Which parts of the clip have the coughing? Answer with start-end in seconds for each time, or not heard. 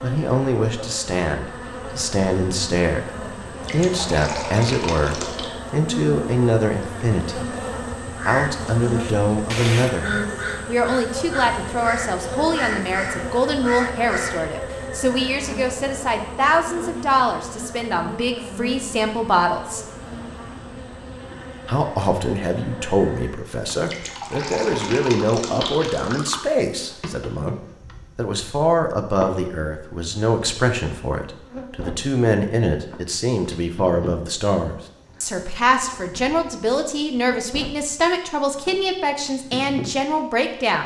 8.9-9.9.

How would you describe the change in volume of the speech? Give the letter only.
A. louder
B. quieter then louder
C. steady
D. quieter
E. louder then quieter
C.